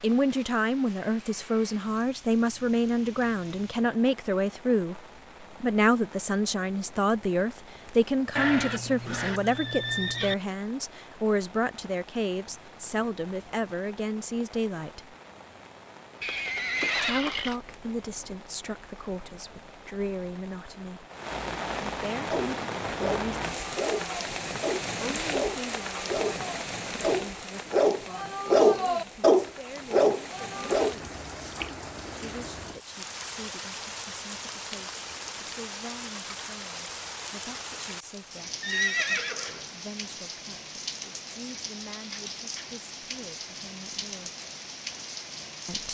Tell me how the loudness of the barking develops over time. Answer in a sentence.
The volume of the barking goes up.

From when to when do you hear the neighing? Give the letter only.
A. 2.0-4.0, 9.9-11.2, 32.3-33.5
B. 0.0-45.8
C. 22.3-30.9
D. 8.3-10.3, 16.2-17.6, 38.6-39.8
D.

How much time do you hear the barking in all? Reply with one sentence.
The barking can be heard for 9 seconds in total.